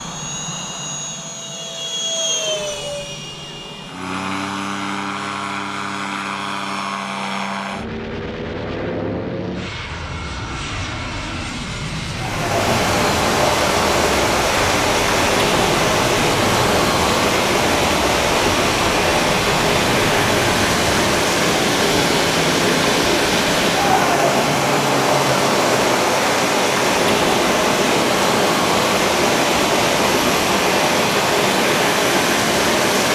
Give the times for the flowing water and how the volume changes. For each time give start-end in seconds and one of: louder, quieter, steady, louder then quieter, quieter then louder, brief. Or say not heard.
12.2-33.1 steady.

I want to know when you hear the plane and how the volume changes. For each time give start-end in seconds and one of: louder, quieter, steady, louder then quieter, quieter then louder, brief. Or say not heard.
0.0-33.1 steady.